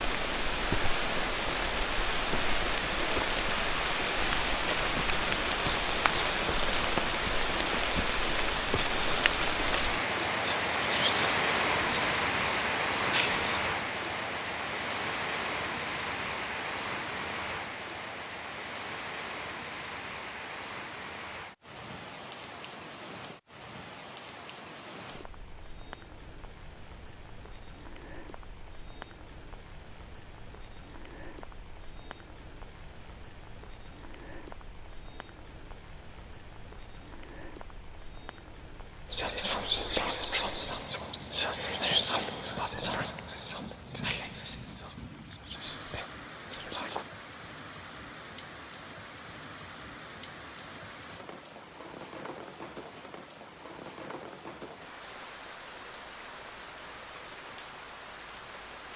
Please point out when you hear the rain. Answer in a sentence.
The rain can be heard from 0.0 to 58.9 s.